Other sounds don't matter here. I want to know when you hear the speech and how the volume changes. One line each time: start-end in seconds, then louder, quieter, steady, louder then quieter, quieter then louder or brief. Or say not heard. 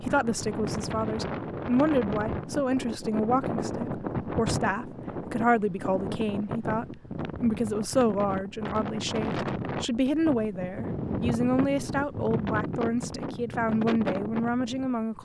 0.0-15.2 steady.